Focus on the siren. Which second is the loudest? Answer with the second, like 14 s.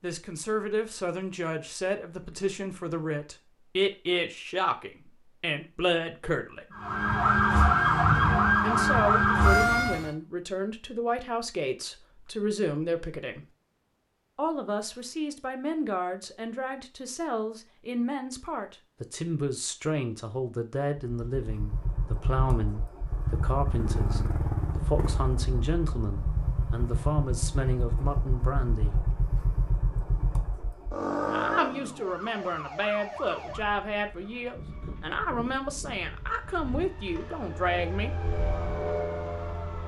8 s.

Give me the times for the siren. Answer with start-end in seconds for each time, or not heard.
6.8-10.1, 31.8-39.8.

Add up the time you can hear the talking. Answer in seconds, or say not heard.
33 s.